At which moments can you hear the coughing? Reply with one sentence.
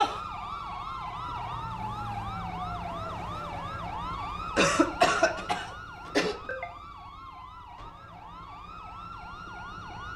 You can hear the coughing from 4.5 to 6.3 s.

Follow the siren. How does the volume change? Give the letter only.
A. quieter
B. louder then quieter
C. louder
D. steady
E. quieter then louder
A.